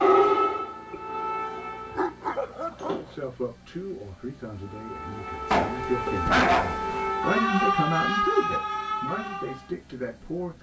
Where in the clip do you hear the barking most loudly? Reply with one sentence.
The loudest moment of the barking is at 6 seconds.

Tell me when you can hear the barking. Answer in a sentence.
You can hear the barking from 1.9 to 3.0 s and from 5.5 to 7.1 s.